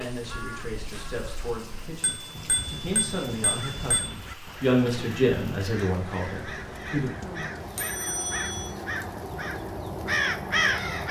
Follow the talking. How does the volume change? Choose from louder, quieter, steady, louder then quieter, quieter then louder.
louder then quieter.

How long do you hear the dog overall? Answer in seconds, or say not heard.
not heard.